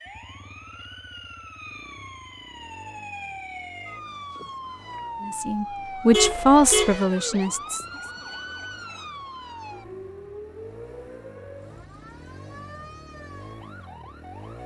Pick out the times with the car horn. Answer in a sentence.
The car horn can be heard from 6.1 to 7.0 s.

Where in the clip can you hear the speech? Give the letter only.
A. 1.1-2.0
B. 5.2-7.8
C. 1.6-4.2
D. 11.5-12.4
B.